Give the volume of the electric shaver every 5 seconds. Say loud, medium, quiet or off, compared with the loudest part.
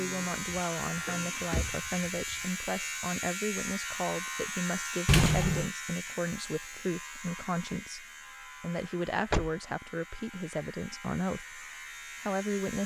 loud, medium, medium.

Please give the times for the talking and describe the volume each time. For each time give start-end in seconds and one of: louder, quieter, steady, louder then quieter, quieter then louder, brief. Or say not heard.
0.0-11.7 steady
12.2-12.8 brief.